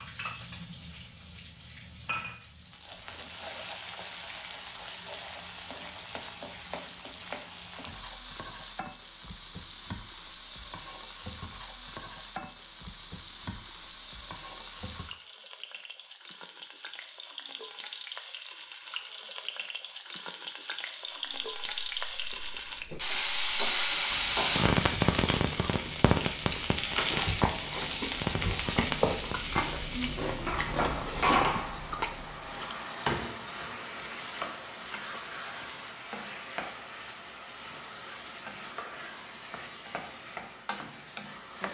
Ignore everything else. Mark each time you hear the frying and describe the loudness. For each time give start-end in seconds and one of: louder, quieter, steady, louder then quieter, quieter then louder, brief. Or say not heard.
0.0-41.6 louder then quieter.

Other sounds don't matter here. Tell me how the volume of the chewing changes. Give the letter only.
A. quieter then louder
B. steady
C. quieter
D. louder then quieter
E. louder
E.